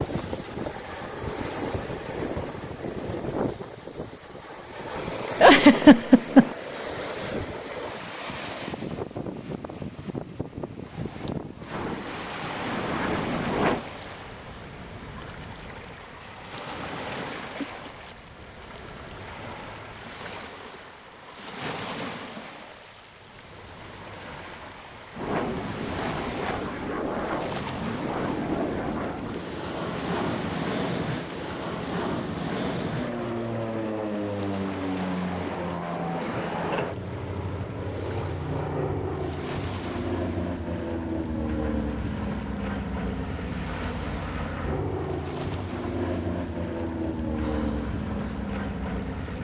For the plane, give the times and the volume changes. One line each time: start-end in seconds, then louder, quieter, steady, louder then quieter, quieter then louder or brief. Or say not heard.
11.7-13.8 brief
25.1-49.3 steady.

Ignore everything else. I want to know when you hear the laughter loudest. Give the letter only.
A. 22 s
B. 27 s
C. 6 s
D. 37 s
C.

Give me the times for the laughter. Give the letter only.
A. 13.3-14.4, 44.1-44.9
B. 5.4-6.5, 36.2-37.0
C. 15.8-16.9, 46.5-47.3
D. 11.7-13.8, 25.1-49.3
B.